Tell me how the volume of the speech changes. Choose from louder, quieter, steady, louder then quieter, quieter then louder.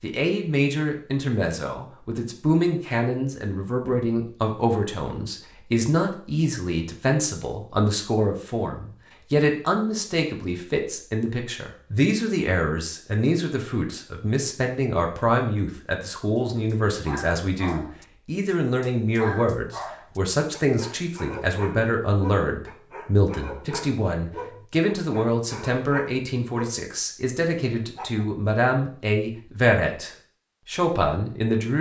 steady.